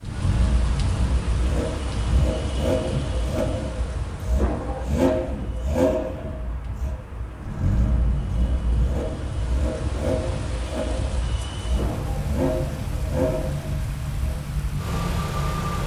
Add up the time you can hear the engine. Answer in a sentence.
The engine can be heard for 16 seconds in total.